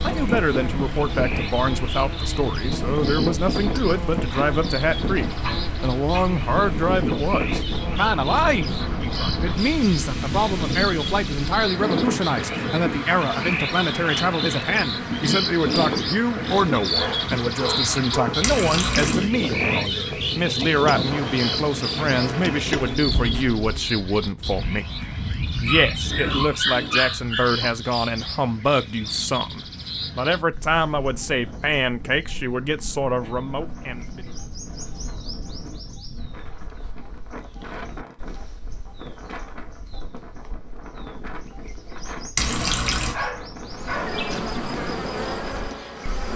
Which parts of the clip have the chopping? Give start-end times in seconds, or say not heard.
not heard.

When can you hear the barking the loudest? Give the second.
27 s.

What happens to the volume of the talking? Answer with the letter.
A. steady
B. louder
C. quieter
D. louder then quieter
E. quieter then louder
A.